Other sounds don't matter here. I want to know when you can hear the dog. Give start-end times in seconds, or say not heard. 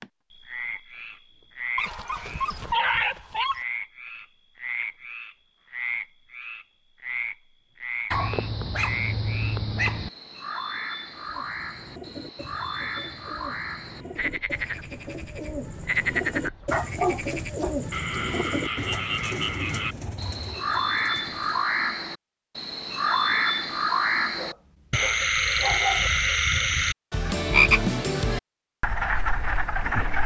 1.8-3.6, 8.1-10.1, 16.7-18.4, 24.4-26.1.